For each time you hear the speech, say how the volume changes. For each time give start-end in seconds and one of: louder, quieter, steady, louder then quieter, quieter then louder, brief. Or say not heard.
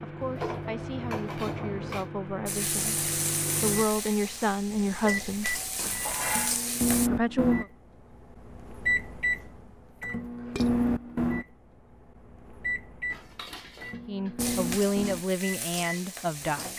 0.0-5.5 louder
7.0-7.7 brief
14.1-16.7 brief.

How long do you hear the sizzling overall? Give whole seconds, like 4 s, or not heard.
7 s.